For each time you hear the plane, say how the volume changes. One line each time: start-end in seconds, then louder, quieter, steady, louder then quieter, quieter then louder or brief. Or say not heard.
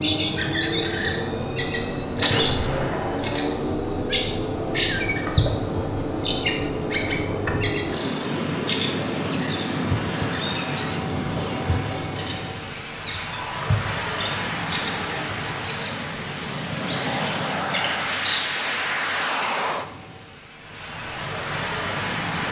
0.0-22.4 steady.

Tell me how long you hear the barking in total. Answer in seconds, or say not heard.
not heard.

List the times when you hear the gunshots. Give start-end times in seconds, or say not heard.
2.2-3.5.